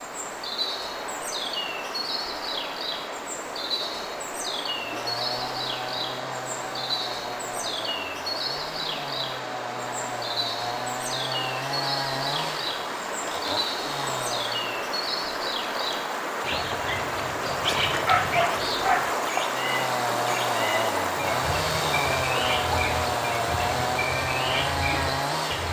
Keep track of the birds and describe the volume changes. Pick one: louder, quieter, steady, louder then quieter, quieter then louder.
steady.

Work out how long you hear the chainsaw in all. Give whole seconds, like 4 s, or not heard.
16 s.